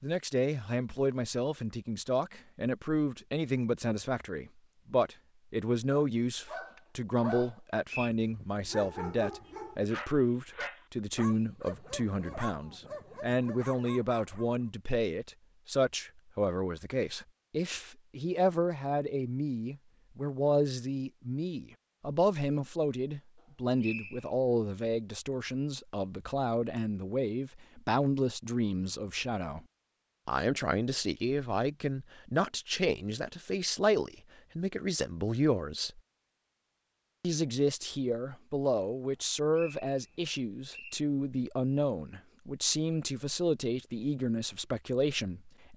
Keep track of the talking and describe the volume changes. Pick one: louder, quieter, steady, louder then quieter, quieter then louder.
steady.